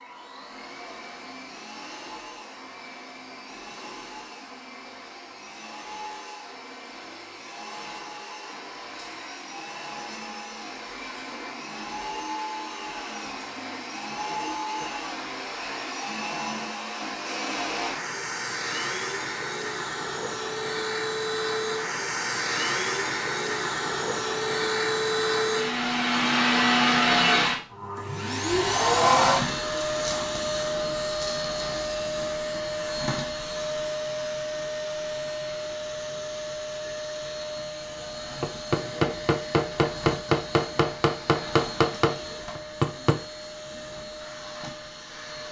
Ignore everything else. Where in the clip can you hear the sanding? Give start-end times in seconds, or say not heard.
not heard.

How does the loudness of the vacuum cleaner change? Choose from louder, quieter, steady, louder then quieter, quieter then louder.
louder then quieter.